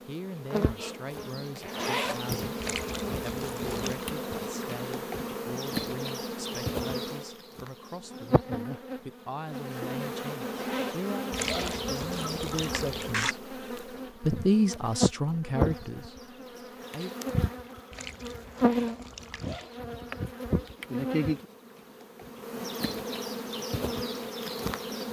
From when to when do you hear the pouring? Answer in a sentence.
You can hear the pouring from 2.6 to 4.0 s, from 11.3 to 13.3 s and from 17.9 to 19.7 s.